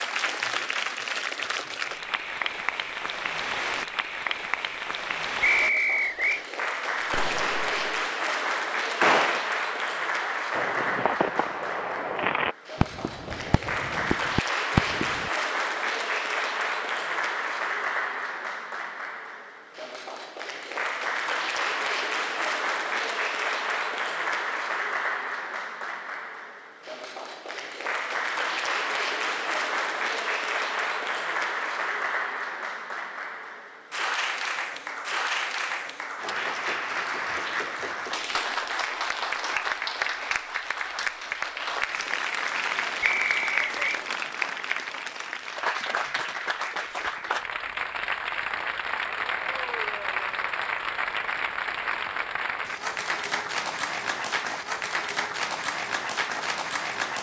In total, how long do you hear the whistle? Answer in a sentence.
You can hear the whistle for 2 seconds altogether.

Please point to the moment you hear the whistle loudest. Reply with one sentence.
The loudest moment of the whistle is at 6 seconds.